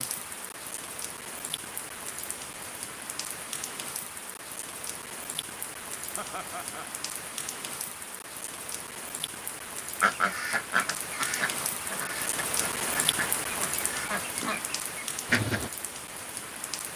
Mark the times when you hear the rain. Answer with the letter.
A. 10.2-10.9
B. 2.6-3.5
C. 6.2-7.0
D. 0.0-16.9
D.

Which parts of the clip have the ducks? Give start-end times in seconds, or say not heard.
10.0-15.7.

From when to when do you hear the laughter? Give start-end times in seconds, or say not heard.
6.2-7.0.